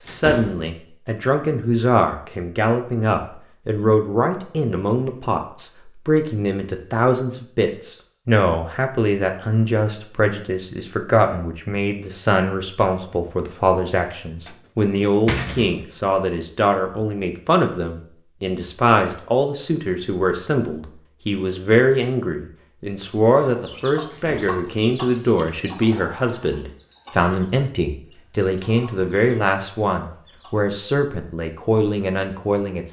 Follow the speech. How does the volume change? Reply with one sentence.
The volume of the speech stays about the same.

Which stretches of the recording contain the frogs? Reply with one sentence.
You can't hear the frogs here.